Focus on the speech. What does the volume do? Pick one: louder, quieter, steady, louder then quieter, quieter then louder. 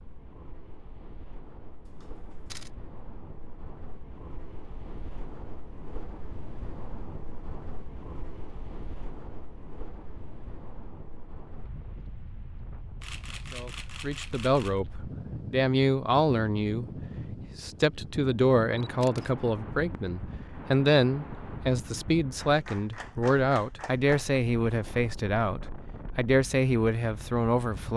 steady.